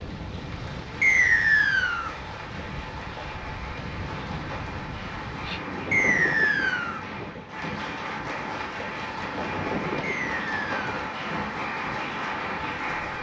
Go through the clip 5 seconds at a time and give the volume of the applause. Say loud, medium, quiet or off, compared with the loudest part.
medium, loud, loud.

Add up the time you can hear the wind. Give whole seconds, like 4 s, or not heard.
13 s.